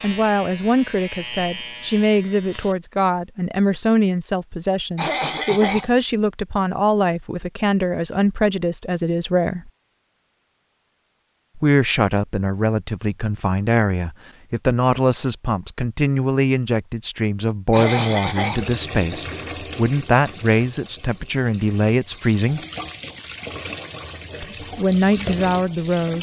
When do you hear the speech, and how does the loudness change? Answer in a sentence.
The speech can be heard from 0.0 to 9.7 s, at a steady volume; from 11.6 to 22.6 s, at a steady volume; and briefly from 24.4 to 26.1 s.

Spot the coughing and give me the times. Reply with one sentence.
The coughing can be heard from 5.0 to 5.9 s and from 17.7 to 18.6 s.